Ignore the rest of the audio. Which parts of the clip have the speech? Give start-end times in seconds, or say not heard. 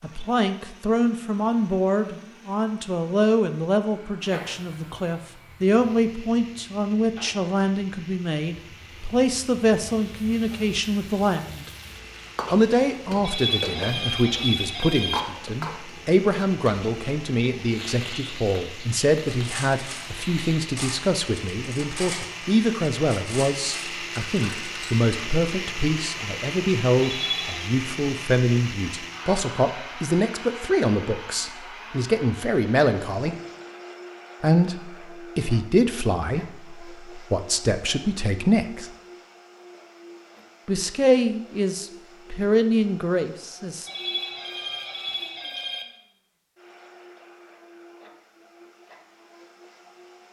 0.0-11.7, 12.5-33.4, 34.4-38.9, 40.6-43.9.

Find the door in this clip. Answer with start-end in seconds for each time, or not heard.
not heard.